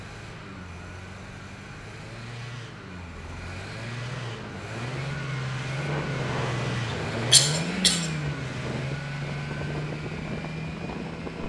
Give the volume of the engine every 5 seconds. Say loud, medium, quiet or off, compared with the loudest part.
medium, loud, medium.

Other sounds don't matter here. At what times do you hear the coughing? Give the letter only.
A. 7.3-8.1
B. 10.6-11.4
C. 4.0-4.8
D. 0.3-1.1
A.